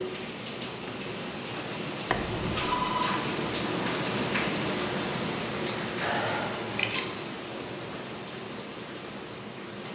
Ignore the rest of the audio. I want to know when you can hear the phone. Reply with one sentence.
You can hear the phone from 2.1 to 3.2 s and from 6.0 to 7.1 s.